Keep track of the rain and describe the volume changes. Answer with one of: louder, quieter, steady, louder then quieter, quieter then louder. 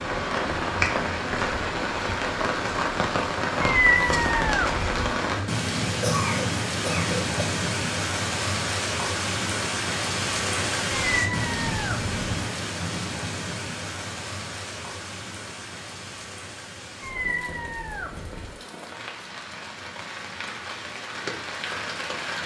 quieter.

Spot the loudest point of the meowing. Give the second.
4 s.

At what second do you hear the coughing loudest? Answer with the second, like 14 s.
6 s.